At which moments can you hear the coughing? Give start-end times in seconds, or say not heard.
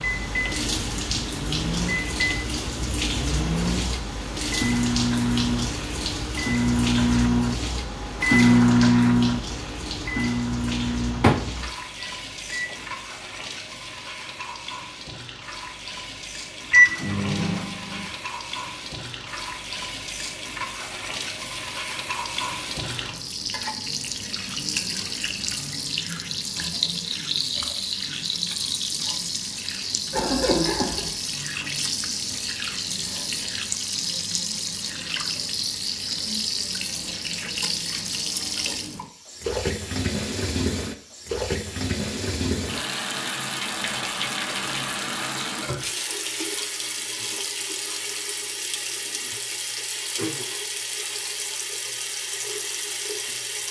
30.1-31.1.